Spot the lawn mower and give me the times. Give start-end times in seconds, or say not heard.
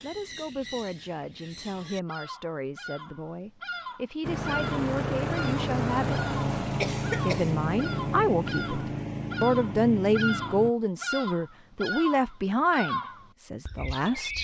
4.2-10.7.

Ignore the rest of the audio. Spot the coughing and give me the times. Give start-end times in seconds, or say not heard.
6.8-7.5.